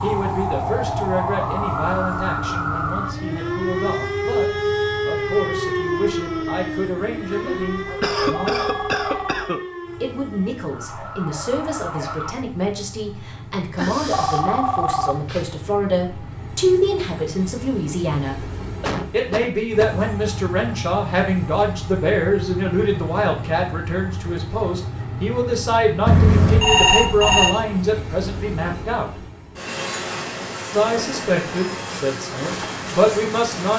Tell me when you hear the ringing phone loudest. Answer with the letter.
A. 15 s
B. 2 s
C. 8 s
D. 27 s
D.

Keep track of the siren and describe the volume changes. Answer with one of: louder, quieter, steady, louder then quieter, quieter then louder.
quieter.